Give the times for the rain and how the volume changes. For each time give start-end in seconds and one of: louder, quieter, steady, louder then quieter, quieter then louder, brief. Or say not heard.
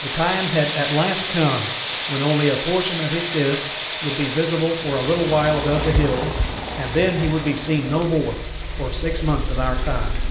0.0-10.2 quieter.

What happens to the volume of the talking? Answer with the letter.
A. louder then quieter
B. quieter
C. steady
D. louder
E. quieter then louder
C.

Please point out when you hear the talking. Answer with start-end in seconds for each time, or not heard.
0.0-10.2.